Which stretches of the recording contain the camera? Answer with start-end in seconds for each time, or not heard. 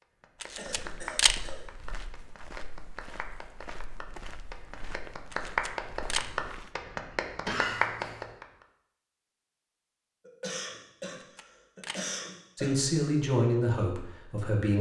0.4-1.4, 5.3-6.3, 11.2-12.1.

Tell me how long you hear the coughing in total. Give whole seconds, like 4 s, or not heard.
4 s.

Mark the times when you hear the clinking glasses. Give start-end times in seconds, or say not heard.
not heard.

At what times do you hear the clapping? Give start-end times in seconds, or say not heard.
0.0-8.7.